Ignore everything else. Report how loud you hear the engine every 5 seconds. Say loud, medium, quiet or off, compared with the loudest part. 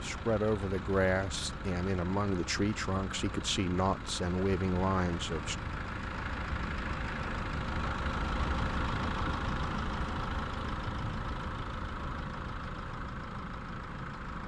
medium, loud, loud.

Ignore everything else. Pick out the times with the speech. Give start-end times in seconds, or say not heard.
0.0-5.5.